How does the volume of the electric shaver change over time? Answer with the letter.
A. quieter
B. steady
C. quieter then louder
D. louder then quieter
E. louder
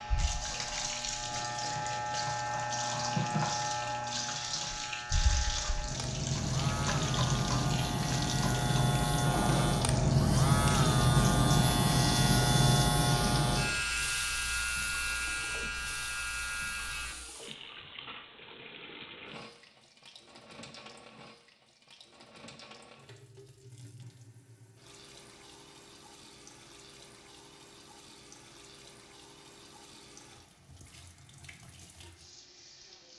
D.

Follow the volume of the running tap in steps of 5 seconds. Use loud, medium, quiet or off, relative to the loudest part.
loud, loud, loud, medium, quiet, quiet, quiet.